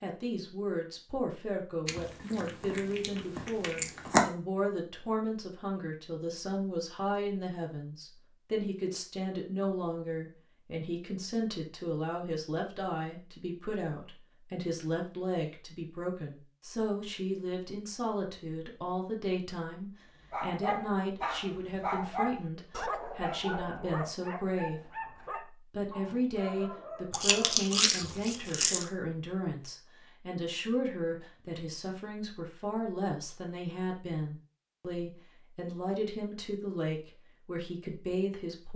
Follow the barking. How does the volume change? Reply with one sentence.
The volume of the barking goes down.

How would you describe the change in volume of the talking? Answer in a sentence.
The volume of the talking stays about the same.